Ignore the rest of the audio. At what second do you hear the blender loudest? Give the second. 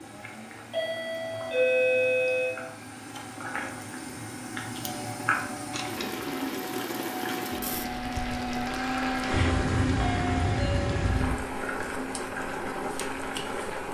9 s.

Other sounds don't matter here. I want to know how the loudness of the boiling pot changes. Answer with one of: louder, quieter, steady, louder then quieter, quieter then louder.
louder.